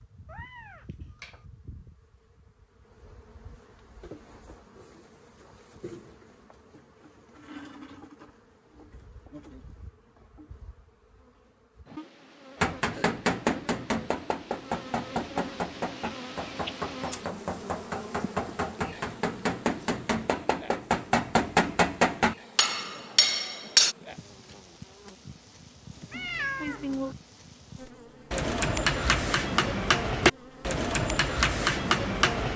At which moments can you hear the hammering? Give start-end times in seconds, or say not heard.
12.6-23.9, 28.3-32.5.